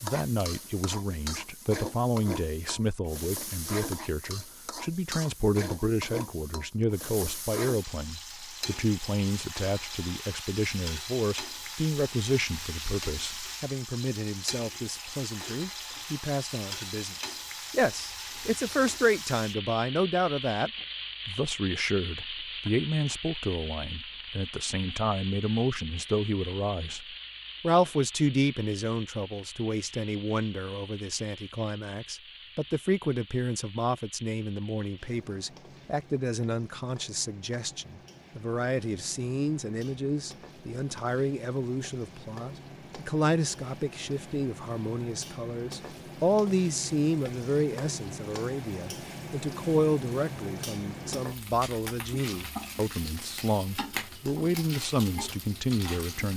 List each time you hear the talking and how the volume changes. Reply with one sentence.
The talking can be heard from 0.0 to 56.3 s, at a steady volume.